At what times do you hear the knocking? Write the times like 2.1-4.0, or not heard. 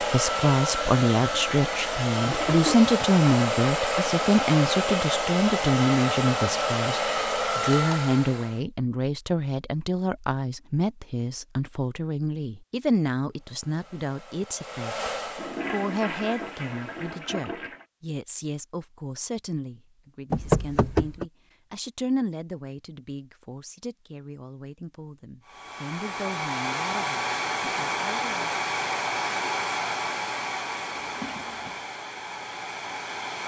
20.3-21.2.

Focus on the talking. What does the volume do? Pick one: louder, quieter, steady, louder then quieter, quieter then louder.
quieter.